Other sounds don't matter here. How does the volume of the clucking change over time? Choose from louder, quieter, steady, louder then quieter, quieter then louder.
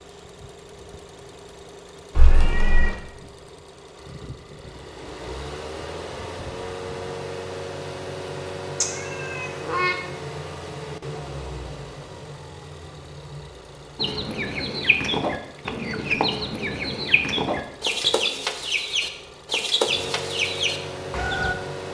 steady.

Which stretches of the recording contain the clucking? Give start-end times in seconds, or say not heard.
13.9-21.6.